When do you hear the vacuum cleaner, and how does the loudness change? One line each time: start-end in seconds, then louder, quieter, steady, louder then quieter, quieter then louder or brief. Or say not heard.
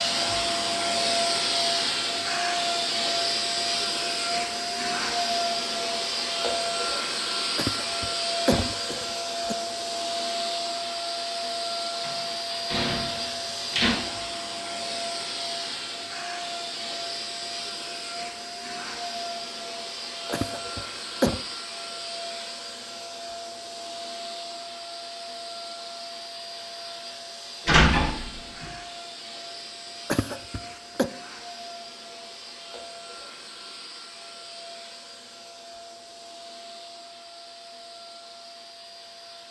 0.0-39.4 quieter.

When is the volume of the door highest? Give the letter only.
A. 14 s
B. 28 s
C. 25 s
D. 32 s
B.